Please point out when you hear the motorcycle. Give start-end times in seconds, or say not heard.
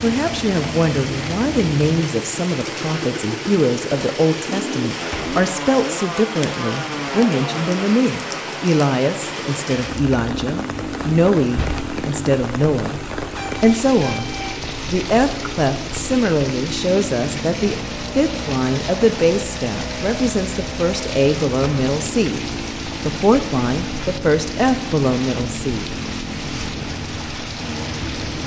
0.0-28.4.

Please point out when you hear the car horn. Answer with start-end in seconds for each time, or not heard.
13.3-14.6.